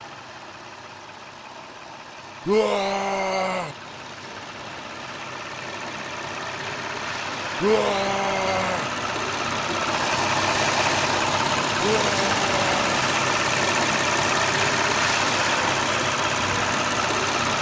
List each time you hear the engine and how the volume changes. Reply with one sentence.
The engine can be heard from 0.0 to 17.5 s, getting louder.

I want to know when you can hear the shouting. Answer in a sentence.
You can hear the shouting from 2.5 to 3.8 s, from 7.6 to 8.9 s and from 11.8 to 13.1 s.